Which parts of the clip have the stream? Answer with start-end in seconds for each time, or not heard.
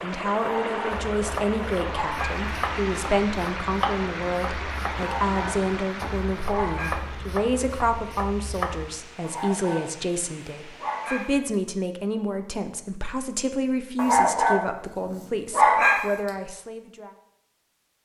0.0-11.4.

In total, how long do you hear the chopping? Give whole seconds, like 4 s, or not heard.
8 s.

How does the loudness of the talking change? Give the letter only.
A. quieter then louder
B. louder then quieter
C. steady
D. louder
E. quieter
C.